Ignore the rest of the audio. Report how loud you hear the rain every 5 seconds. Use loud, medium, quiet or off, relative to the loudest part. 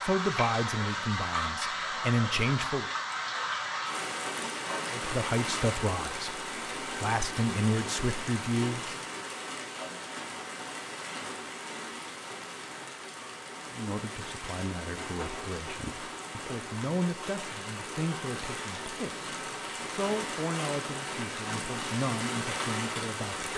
loud, loud, medium, medium, loud.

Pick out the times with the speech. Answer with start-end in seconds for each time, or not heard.
0.0-2.9, 4.9-8.9, 13.7-23.5.